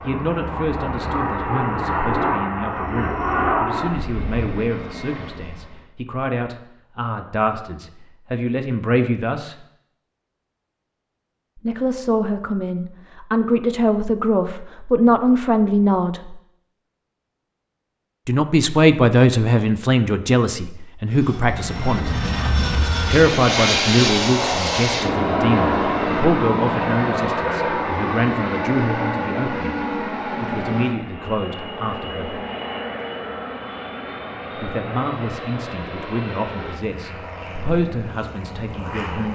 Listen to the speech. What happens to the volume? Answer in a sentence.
The loudness of the speech goes up, then down.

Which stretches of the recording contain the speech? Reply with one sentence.
The speech can be heard from 0.0 to 9.6 s, from 11.6 to 16.4 s, from 18.2 to 22.2 s, from 23.1 to 32.4 s and from 34.5 to 39.3 s.